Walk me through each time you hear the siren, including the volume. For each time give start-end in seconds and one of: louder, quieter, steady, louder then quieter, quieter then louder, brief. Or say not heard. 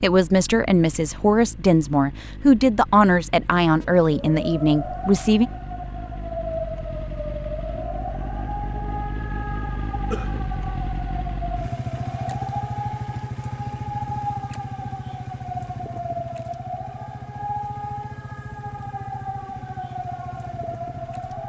3.8-21.4 steady.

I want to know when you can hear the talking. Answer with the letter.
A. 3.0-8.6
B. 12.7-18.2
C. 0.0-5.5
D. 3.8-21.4
C.